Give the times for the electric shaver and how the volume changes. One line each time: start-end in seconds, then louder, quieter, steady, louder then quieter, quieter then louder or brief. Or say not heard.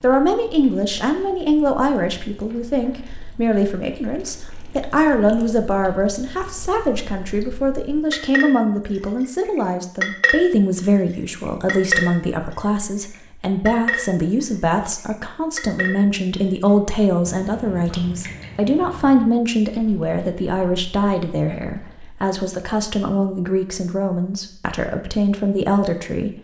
not heard.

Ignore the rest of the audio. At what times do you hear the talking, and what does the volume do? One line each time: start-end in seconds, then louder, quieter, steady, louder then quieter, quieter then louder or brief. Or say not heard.
0.0-26.3 steady.